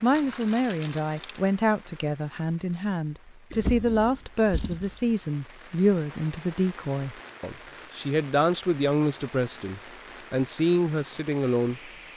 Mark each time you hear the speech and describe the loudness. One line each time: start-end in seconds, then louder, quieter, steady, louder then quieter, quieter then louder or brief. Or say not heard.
0.0-11.9 steady.